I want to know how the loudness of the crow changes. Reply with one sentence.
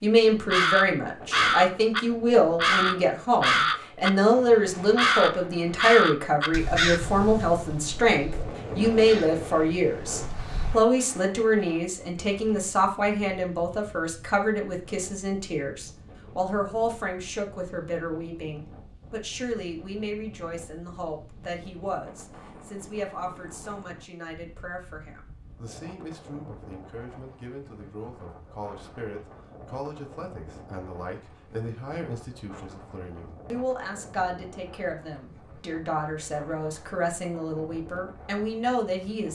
The loudness of the crow goes down.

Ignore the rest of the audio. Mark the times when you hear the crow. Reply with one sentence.
You can hear the crow from 0.5 to 10.8 s.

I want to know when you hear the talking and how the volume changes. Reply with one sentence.
You can hear the talking from 0.0 to 39.3 s, getting quieter then louder.